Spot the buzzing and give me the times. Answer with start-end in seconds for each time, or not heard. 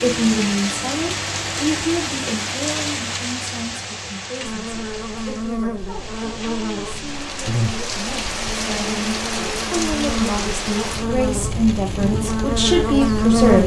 4.4-13.6.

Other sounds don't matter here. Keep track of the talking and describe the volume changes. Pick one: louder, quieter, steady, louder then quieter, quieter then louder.
quieter then louder.